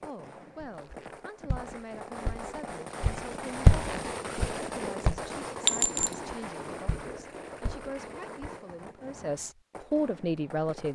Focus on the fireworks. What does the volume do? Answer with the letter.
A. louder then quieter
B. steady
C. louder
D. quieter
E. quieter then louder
A.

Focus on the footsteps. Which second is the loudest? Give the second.
4 s.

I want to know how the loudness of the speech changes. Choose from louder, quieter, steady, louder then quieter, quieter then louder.
louder.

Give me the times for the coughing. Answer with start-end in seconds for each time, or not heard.
not heard.